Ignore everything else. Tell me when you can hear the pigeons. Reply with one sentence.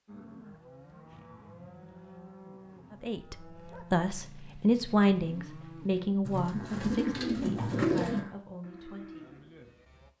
The pigeons can be heard from 6.2 to 8.2 s.